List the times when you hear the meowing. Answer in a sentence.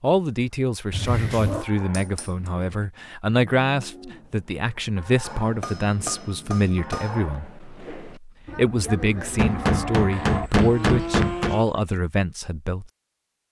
The meowing can be heard from 0.9 to 1.6 s and from 10.1 to 11.4 s.